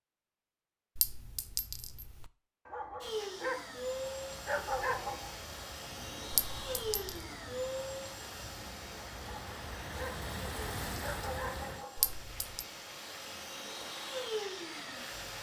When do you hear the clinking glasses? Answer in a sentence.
You can hear the clinking glasses from 0.9 to 2.3 s, from 6.3 to 7.2 s and from 11.9 to 12.7 s.